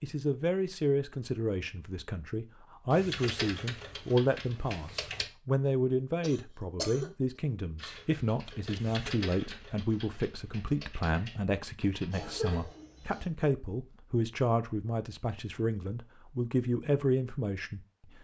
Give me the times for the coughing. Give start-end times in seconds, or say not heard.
6.2-7.1, 12.1-13.3.